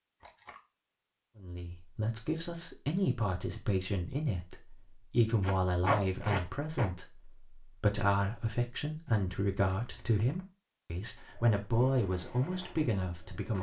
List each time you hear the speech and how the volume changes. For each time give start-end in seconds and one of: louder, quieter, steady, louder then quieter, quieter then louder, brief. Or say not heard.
1.4-13.5 steady.